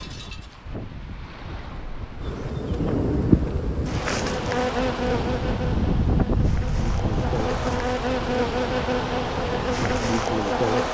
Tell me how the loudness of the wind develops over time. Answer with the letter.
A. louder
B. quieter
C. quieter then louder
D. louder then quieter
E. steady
D.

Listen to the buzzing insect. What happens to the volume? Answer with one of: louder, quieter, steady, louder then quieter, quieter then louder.
quieter then louder.